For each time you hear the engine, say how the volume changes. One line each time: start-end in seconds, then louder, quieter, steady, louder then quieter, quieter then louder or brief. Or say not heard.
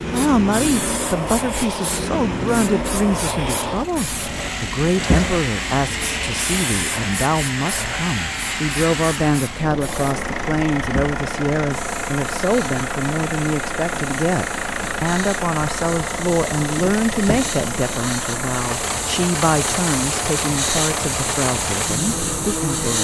0.0-22.9 steady.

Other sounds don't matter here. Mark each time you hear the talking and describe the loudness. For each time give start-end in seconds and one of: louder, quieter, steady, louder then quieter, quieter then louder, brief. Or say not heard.
0.1-22.9 steady.